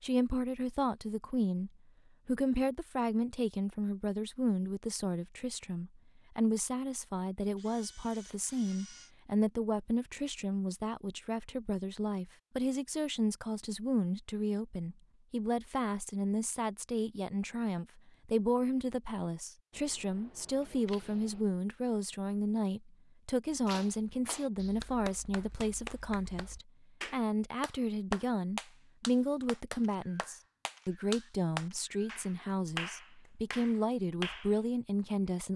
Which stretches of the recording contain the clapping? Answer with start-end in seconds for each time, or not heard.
23.5-34.5.